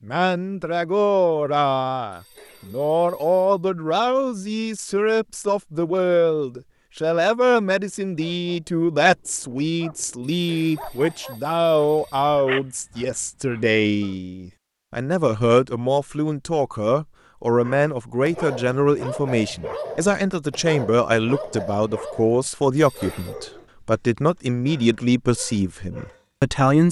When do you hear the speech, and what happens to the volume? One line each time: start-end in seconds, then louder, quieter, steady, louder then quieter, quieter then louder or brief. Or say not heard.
0.1-26.8 steady.